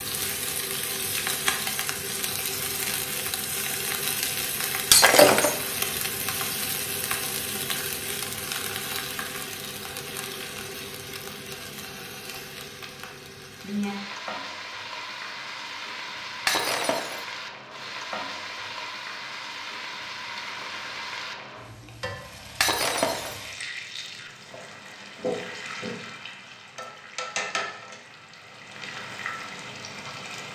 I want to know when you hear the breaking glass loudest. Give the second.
5 s.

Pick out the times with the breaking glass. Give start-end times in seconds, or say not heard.
4.9-5.5, 16.4-17.2, 22.6-23.4.